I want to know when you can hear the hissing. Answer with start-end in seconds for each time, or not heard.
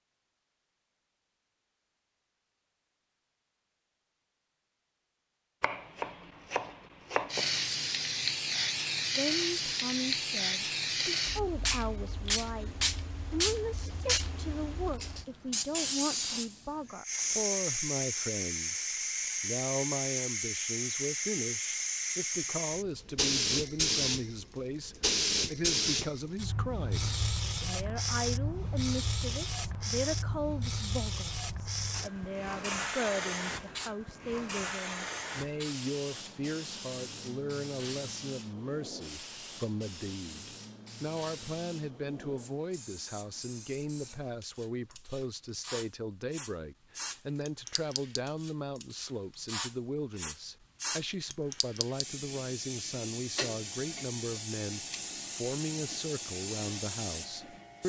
7.3-57.8.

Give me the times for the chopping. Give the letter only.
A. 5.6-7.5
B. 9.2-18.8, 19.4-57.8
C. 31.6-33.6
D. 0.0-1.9
A.